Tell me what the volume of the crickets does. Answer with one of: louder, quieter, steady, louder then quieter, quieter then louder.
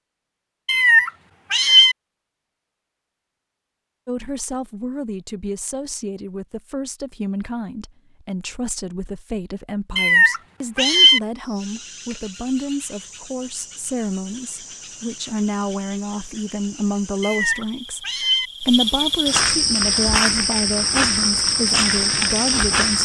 louder.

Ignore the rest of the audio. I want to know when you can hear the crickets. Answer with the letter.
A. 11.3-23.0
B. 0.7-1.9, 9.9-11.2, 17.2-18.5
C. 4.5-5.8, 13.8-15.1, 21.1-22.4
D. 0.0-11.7
A.